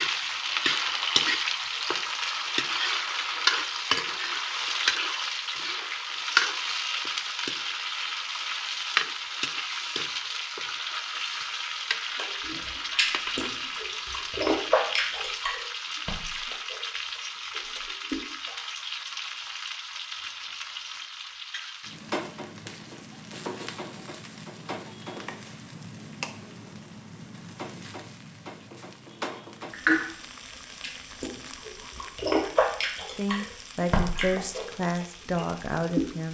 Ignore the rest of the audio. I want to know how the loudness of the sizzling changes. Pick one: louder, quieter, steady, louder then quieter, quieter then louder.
quieter.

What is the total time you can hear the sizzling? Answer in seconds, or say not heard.
36 s.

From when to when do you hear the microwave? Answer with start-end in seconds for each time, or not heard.
not heard.